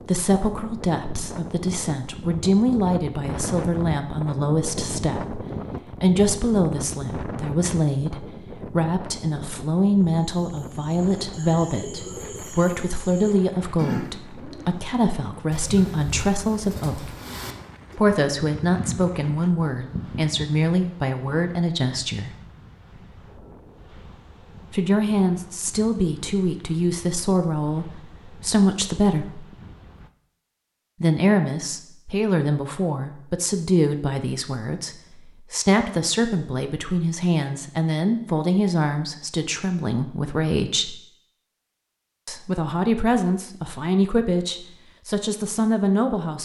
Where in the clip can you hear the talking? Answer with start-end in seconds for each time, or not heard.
0.1-17.1, 17.9-22.3, 24.7-29.4, 31.0-41.0, 42.2-46.4.